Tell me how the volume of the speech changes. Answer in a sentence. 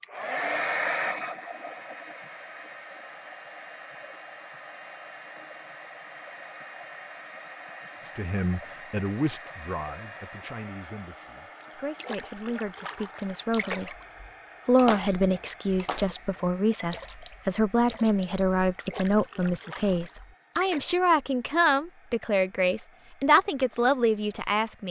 The loudness of the speech goes up.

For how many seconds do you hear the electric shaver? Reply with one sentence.
You can't hear the electric shaver here.